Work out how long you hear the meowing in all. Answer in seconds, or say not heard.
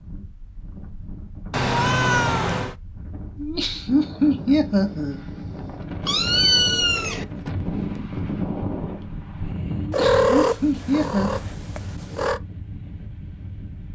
5 s.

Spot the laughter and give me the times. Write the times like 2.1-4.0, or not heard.
3.4-5.2, 9.8-11.4.